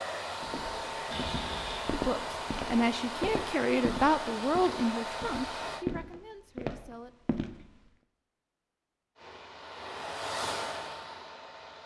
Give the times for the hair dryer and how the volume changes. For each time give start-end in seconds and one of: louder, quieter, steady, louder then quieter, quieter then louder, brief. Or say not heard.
0.0-5.8 steady
9.2-11.8 brief.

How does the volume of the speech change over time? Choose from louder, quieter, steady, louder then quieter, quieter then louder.
quieter.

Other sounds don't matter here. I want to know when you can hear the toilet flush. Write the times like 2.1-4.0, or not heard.
1.1-1.9.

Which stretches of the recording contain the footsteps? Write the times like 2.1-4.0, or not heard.
0.4-7.8.